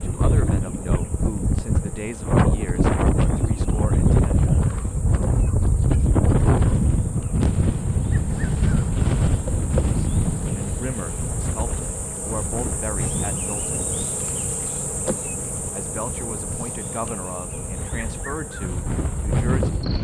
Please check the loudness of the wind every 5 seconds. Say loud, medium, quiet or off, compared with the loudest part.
loud, loud, medium, medium.